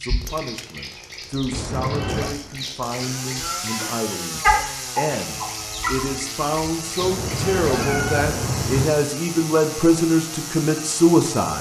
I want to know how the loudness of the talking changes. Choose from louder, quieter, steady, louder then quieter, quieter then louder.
louder.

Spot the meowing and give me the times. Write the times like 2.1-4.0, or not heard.
1.5-2.4, 7.0-8.9.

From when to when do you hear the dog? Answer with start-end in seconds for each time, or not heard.
4.4-6.0.